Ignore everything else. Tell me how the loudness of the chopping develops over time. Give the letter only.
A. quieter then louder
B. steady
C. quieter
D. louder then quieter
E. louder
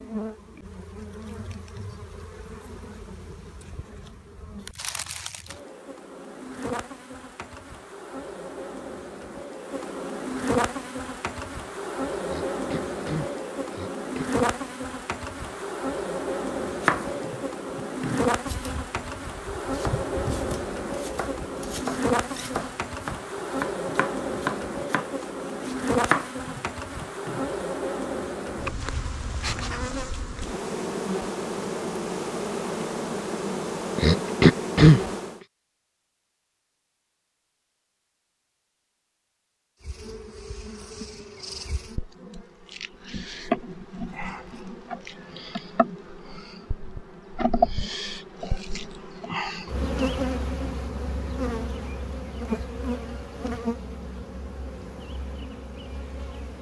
E.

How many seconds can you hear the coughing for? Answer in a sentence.
You can hear the coughing for 3 seconds altogether.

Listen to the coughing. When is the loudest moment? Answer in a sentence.
The volume of the coughing peaks at 35 seconds.